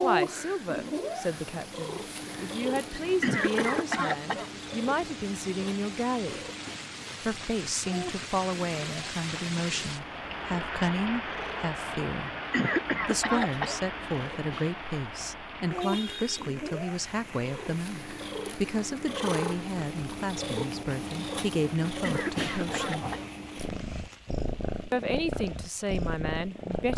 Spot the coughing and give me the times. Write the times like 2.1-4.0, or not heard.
2.9-4.5, 12.2-13.8, 21.9-23.3.